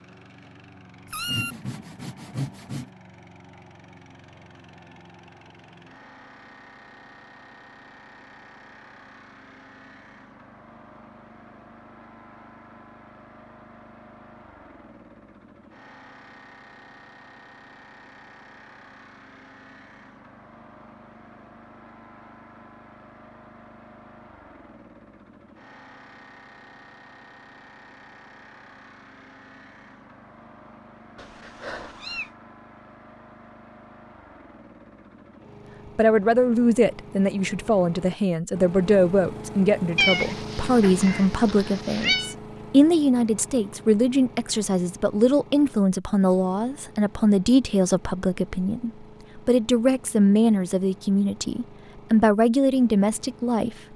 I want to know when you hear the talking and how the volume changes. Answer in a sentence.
The talking can be heard from 36.0 to 53.8 s, at a steady volume.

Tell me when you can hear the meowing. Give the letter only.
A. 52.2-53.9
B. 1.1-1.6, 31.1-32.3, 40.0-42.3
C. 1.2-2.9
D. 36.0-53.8
B.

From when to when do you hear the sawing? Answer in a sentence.
The sawing can be heard from 1.2 to 2.9 s.